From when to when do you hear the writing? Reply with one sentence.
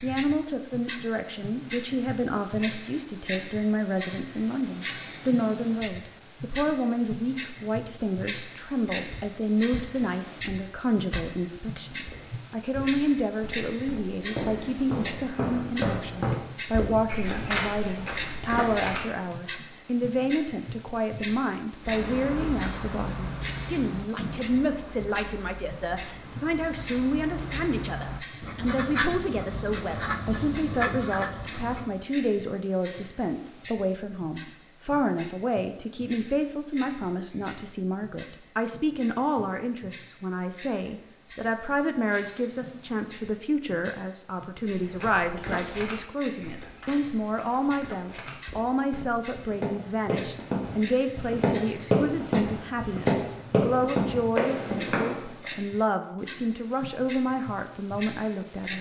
The writing can be heard from 21.8 to 32.0 s.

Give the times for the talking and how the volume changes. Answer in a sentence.
You can hear the talking from 0.0 to 58.7 s, at a steady volume.